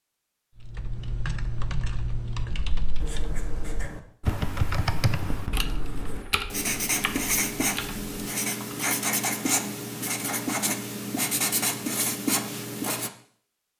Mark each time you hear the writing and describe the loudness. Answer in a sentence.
You can hear the writing from 3.0 to 13.1 s, getting louder.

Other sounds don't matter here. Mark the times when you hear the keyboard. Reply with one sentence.
You can hear the keyboard from 0.6 to 8.9 s.